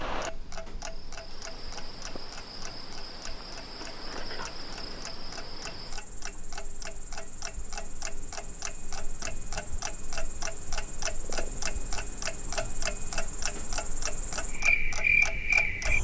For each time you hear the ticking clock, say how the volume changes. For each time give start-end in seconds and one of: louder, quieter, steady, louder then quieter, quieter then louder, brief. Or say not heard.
0.0-15.9 louder.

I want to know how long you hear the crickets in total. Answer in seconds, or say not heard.
16 s.